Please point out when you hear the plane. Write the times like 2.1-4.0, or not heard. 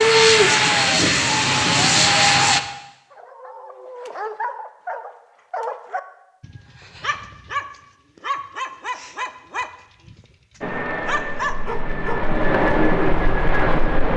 0.0-2.6, 10.6-14.1.